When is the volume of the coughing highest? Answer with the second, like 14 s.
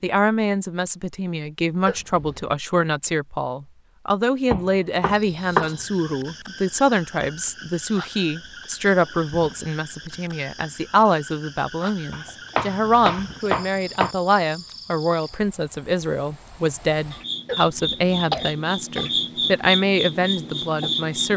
18 s.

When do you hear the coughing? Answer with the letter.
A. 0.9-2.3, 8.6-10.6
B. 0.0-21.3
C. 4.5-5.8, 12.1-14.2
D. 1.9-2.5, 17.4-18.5
D.